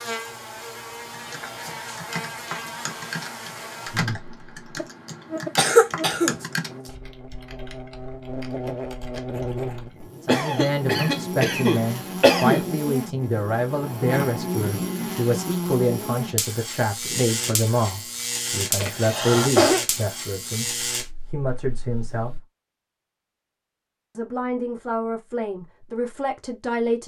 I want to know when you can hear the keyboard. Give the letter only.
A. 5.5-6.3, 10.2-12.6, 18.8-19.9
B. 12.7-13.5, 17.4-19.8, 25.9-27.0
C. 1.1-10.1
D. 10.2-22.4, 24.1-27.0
C.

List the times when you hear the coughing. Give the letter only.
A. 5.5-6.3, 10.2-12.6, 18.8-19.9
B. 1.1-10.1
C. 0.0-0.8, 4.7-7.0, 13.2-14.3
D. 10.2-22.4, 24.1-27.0
A.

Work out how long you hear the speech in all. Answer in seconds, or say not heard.
15 s.